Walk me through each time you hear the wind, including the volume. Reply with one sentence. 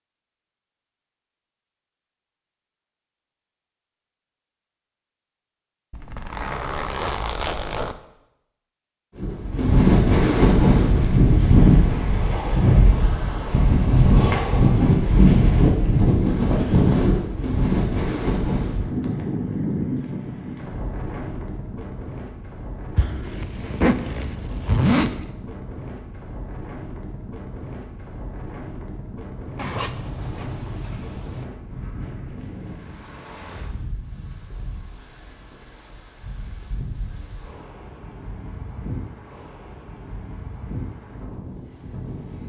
The wind can be heard from 9.2 to 42.4 s, getting quieter.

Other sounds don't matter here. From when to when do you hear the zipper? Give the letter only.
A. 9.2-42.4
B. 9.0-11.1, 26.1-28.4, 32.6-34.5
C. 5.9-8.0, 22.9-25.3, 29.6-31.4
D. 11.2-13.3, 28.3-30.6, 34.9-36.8
C.